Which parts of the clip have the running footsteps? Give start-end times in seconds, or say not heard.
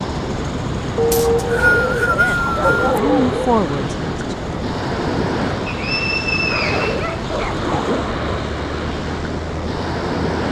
not heard.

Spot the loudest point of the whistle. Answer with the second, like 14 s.
2 s.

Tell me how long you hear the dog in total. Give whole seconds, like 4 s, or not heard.
4 s.